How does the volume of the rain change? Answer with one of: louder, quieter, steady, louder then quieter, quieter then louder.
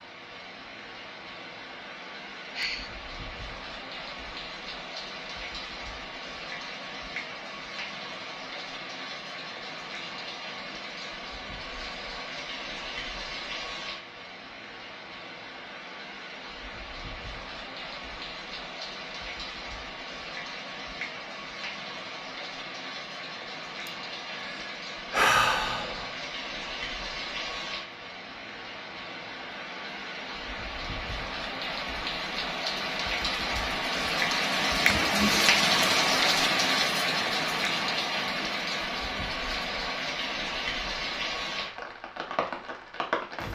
louder.